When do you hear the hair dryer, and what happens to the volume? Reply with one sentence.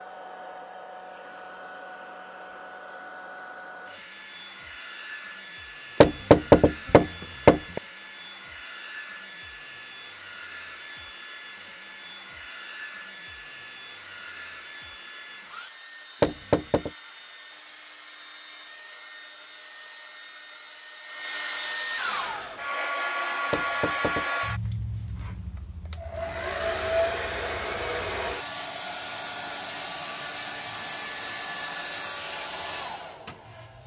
You can hear the hair dryer from 0.0 to 33.8 s, getting louder.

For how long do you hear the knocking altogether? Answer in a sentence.
The knocking can be heard for 3 seconds in total.